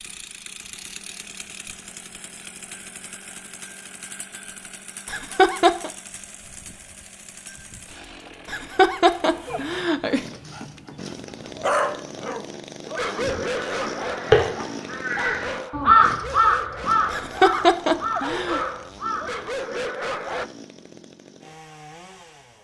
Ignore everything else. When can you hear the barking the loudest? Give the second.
12 s.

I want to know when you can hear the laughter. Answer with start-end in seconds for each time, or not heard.
5.1-5.9, 8.4-10.2, 17.1-18.6.